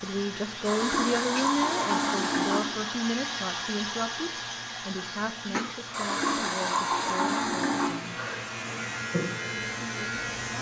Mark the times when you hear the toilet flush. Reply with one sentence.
The toilet flush can be heard from 0.7 to 2.6 s and from 5.9 to 8.0 s.